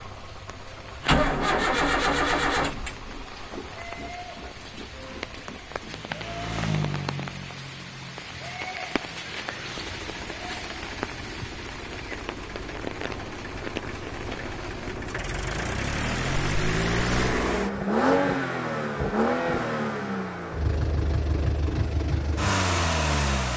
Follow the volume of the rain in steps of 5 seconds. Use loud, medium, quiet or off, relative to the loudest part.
medium, loud, loud, off, off.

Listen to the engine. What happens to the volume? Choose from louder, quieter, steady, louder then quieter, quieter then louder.
quieter then louder.